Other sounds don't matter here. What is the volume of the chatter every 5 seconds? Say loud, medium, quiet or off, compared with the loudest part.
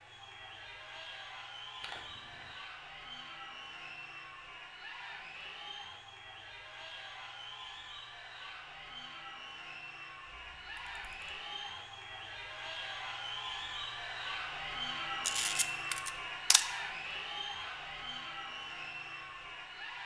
medium, medium, loud, loud.